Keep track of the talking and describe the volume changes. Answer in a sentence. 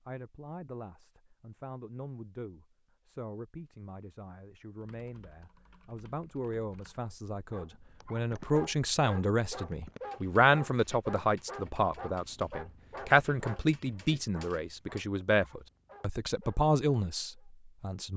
The loudness of the talking goes up.